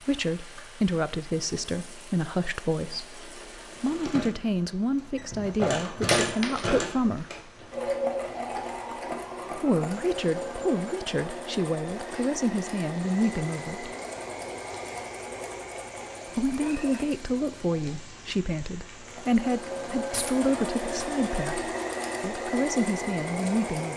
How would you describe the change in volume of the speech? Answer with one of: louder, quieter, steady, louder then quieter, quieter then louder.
steady.